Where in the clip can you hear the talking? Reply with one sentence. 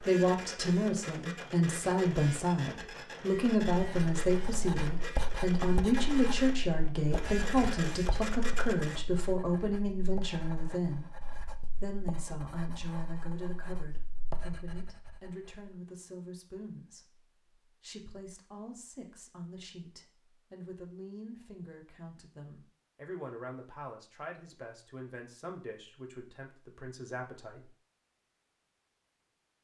You can hear the talking from 0.0 to 11.1 s and from 11.8 to 27.8 s.